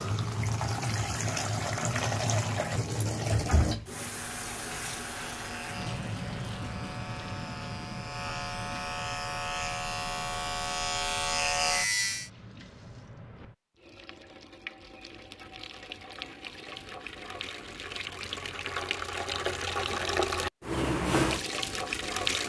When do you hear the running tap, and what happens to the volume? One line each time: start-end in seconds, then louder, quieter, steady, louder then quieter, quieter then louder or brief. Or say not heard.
0.0-22.4 quieter then louder.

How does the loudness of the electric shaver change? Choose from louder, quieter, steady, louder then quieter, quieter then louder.
louder.